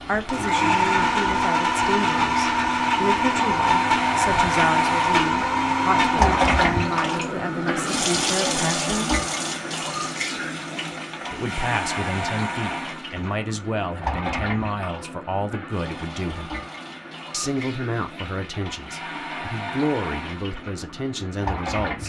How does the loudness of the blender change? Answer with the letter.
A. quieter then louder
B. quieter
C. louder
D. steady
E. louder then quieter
D.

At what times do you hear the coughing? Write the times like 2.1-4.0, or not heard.
not heard.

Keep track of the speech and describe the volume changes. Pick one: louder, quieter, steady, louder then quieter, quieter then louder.
steady.